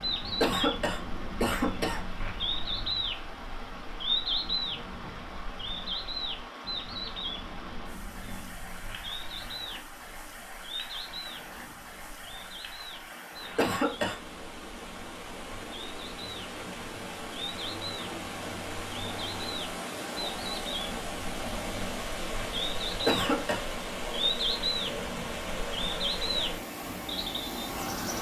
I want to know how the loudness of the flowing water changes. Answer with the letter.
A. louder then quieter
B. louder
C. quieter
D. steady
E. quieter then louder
B.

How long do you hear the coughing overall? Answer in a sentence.
The coughing can be heard for 3 seconds in total.